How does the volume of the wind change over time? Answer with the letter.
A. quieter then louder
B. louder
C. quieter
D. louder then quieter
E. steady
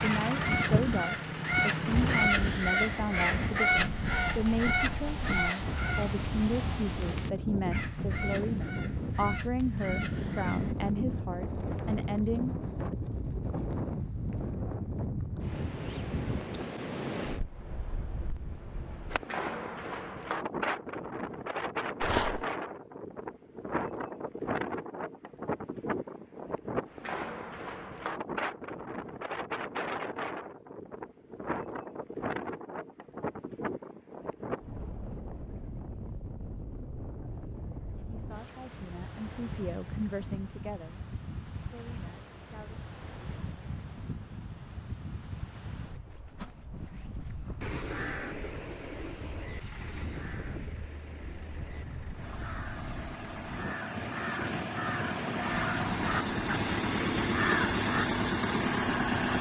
C.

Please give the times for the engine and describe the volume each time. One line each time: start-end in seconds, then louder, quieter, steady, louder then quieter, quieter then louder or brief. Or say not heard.
0.0-2.3 brief
49.6-59.3 louder.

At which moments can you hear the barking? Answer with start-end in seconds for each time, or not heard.
22.0-22.4.